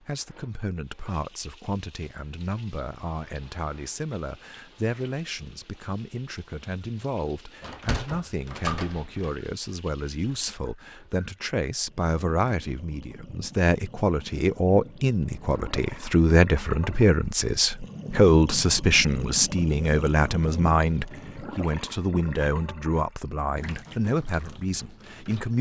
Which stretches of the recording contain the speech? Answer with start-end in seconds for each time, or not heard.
0.1-25.5.